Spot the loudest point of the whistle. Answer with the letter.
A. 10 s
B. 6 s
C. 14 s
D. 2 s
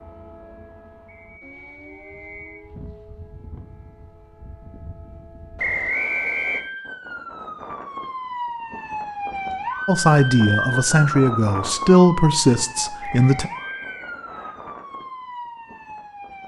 B.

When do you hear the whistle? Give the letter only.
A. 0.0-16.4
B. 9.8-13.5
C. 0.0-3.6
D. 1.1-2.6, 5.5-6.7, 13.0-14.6
D.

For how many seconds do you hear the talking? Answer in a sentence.
You can hear the talking for 4 seconds altogether.